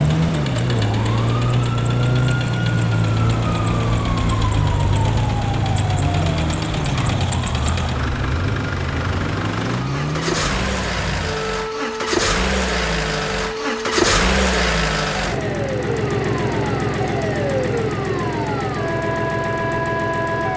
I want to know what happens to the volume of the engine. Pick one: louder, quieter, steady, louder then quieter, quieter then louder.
louder.